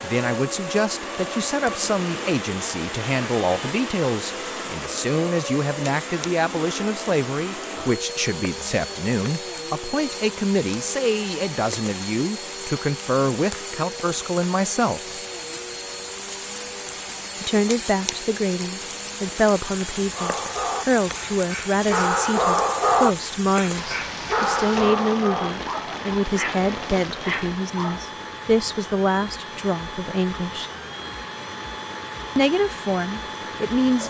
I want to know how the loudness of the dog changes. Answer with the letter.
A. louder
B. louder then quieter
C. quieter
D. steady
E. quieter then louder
B.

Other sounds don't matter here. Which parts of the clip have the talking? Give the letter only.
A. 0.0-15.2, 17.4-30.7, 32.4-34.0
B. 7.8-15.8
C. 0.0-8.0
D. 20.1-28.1
A.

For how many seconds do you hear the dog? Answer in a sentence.
The dog can be heard for 8 seconds in total.